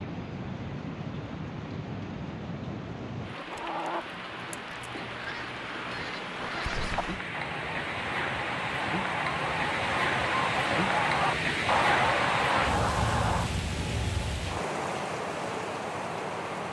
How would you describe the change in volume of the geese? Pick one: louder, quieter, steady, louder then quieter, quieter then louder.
louder.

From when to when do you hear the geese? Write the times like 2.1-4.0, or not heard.
3.4-13.5.